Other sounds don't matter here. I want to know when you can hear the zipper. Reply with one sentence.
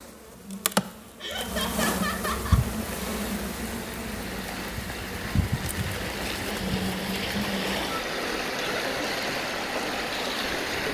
You can't hear the zipper here.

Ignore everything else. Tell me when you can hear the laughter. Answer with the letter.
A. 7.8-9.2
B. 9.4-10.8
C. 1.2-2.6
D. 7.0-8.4
C.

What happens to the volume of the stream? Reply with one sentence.
The loudness of the stream goes up.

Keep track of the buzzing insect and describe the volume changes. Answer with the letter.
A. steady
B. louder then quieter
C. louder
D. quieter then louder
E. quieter
E.